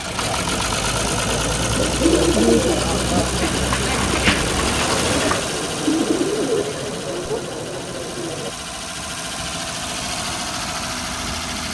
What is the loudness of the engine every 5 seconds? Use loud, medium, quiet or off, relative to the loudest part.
loud, medium, loud.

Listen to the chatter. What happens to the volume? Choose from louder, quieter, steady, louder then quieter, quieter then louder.
steady.